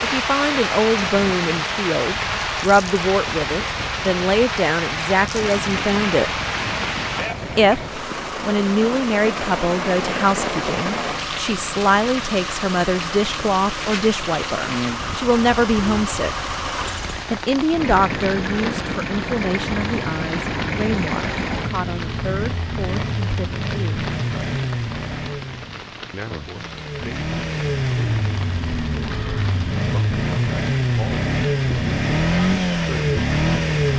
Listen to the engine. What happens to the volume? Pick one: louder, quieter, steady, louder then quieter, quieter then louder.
louder.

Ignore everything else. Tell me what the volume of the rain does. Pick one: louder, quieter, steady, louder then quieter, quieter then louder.
quieter.